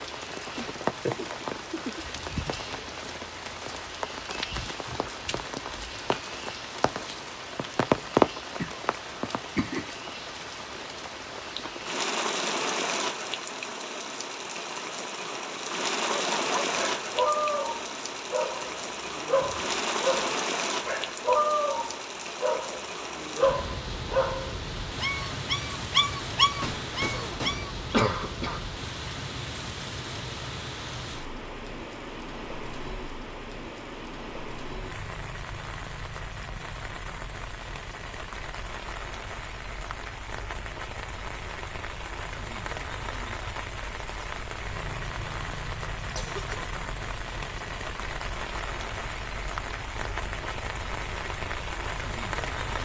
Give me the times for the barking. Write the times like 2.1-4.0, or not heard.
16.1-27.9.